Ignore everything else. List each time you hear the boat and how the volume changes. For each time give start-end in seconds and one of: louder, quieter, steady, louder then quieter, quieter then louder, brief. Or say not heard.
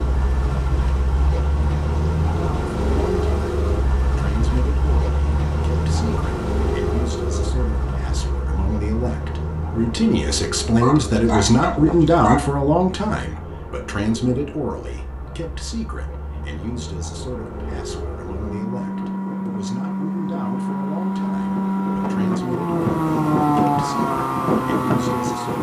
0.0-25.5 quieter then louder.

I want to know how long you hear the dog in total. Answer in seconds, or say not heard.
2 s.